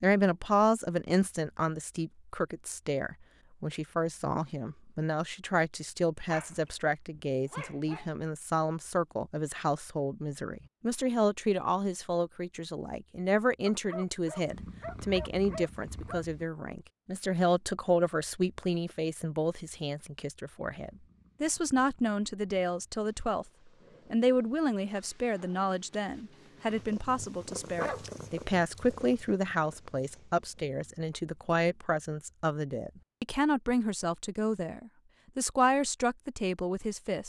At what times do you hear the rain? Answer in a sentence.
The rain can't be heard in this clip.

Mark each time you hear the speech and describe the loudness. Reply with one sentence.
You can hear the speech from 0.0 to 23.4 s, at a steady volume; and from 24.1 to 37.2 s, at a steady volume.